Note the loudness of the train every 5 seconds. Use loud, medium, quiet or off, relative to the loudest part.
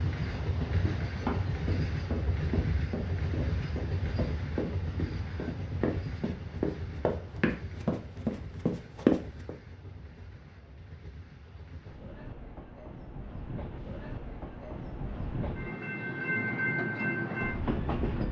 loud, medium, quiet, loud.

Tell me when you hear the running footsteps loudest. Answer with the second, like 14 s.
9 s.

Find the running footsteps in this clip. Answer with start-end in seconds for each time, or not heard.
0.4-9.5.